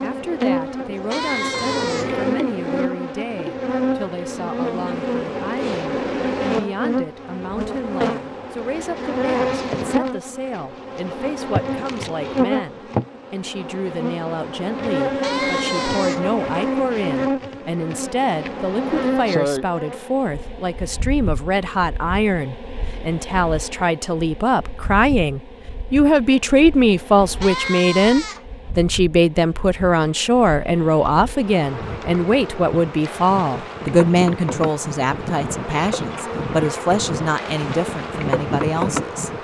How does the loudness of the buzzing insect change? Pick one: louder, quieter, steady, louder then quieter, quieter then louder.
quieter then louder.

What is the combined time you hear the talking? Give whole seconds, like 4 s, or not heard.
39 s.